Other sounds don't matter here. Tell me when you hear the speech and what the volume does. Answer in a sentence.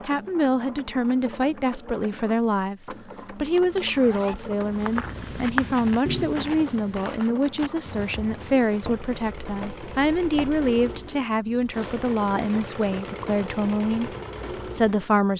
You can hear the speech from 0.1 to 15.3 s, at a steady volume.